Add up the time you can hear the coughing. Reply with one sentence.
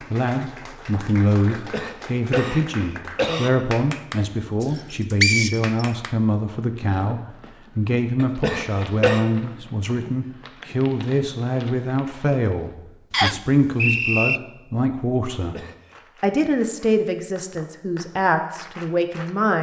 You can hear the coughing for 4 seconds altogether.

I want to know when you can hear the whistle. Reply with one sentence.
You can hear the whistle from 4.7 to 5.8 s and from 13.1 to 14.4 s.